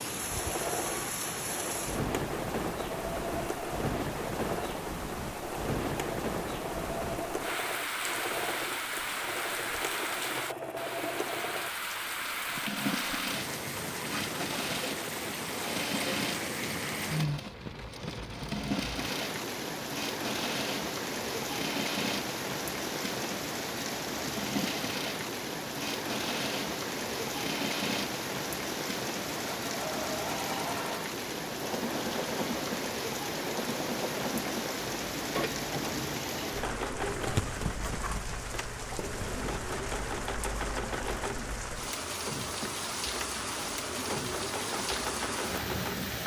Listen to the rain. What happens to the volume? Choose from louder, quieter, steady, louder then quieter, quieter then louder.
steady.